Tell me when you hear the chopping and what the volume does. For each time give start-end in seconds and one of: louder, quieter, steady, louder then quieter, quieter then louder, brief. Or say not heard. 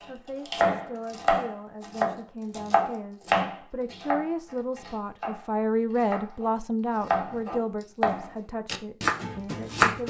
0.5-10.0 quieter then louder.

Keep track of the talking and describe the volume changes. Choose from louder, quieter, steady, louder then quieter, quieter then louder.
louder then quieter.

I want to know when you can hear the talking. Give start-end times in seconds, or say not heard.
0.1-10.0.